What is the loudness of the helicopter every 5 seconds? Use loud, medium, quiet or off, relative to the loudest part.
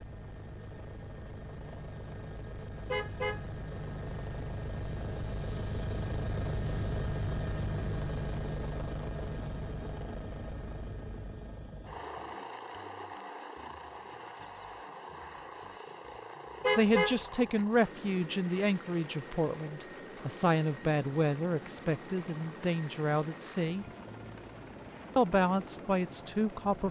medium, loud, medium, medium, medium, medium.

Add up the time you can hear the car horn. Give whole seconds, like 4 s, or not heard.
2 s.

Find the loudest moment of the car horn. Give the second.
17 s.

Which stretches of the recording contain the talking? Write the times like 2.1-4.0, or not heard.
16.8-23.9, 25.1-26.8.